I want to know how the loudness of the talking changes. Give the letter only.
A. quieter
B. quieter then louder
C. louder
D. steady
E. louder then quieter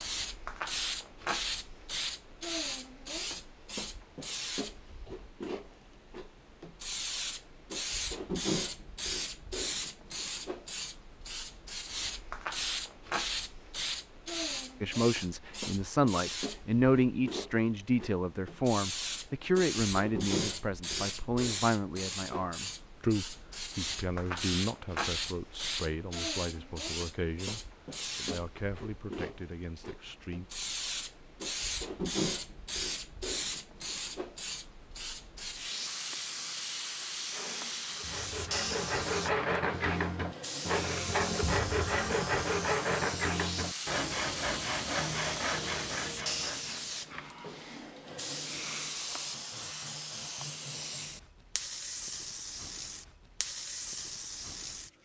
A.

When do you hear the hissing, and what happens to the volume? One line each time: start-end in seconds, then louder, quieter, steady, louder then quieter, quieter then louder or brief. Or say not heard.
0.0-54.9 steady.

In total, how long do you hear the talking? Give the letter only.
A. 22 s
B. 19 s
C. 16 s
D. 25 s
C.